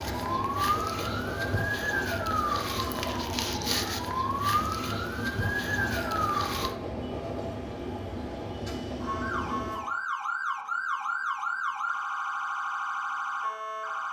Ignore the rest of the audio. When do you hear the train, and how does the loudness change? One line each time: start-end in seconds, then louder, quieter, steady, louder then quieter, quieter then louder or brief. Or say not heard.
0.0-9.9 steady.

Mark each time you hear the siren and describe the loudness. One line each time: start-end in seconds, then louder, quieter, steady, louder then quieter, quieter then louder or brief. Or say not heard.
0.0-6.8 steady
9.0-14.0 steady.